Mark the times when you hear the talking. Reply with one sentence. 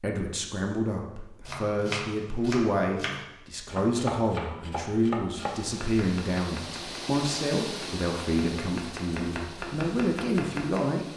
The talking can be heard from 0.0 to 11.1 s.